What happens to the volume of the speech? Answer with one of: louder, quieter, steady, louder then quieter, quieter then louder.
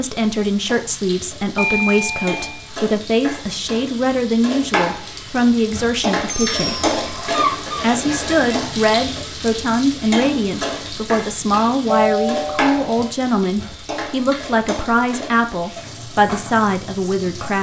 steady.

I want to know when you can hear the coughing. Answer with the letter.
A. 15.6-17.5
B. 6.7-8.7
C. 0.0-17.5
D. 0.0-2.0
B.